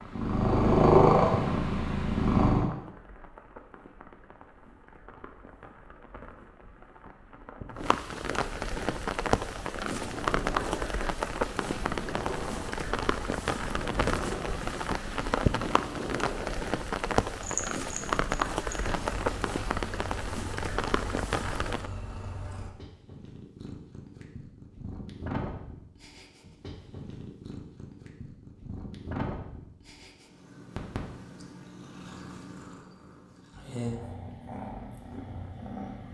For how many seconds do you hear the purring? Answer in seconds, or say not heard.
29 s.